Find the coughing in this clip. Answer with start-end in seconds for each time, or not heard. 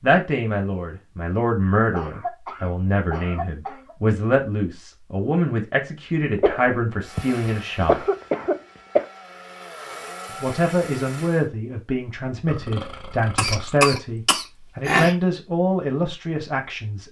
1.9-4.0, 6.3-9.1, 13.3-15.2.